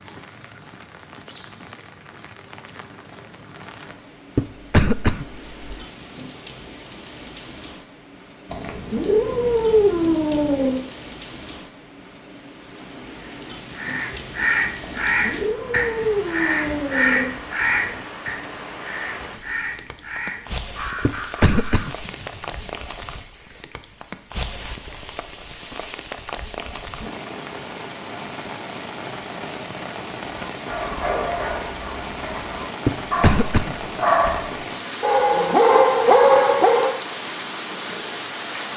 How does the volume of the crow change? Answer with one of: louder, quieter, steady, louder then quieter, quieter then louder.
quieter.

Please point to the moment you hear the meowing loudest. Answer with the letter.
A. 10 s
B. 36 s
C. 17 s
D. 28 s
A.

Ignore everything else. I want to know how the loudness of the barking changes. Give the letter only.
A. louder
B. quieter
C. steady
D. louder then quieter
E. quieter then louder
A.